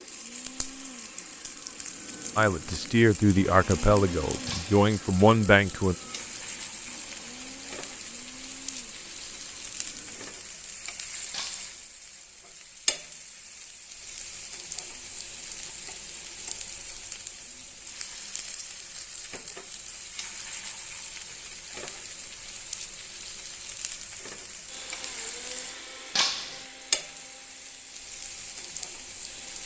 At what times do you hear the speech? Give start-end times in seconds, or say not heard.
2.4-6.0.